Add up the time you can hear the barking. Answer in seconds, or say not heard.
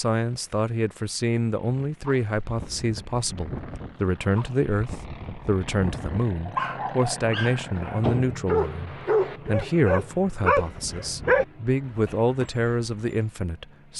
11 s.